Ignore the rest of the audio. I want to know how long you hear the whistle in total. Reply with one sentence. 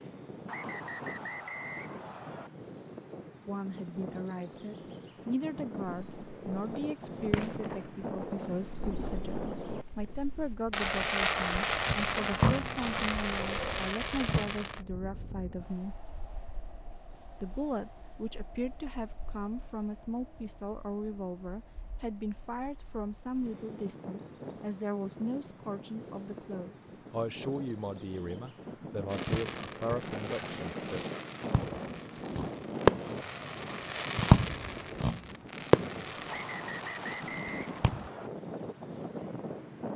You can hear the whistle for 4 seconds altogether.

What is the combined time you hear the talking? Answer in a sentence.
You can hear the talking for 26 seconds altogether.